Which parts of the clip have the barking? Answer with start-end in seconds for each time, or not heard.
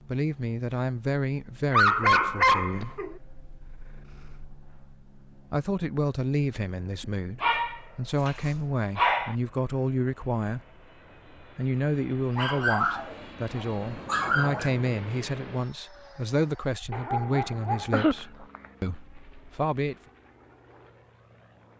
1.7-3.1, 7.4-9.3, 12.3-14.7, 16.9-18.6.